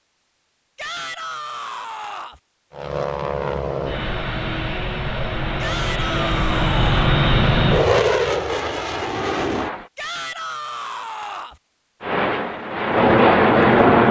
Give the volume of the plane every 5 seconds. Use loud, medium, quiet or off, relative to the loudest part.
medium, medium, loud.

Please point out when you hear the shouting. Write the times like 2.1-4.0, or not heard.
0.8-2.4, 5.6-7.1, 9.9-11.6.